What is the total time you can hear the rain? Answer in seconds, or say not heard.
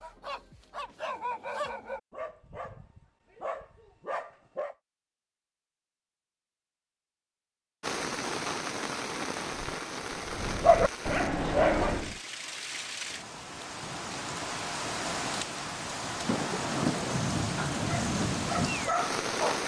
12 s.